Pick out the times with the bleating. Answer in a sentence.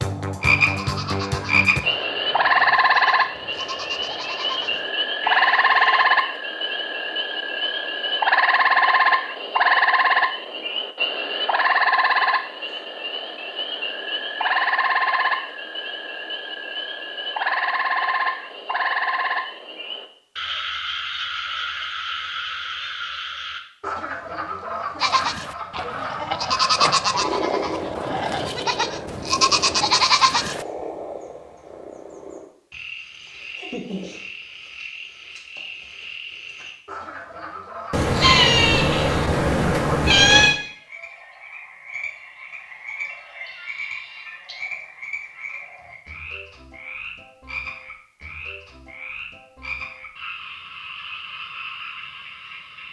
You can hear the bleating from 0.6 to 6.0 s and from 25.0 to 30.6 s.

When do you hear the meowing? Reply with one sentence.
You can hear the meowing from 37.9 to 40.6 s.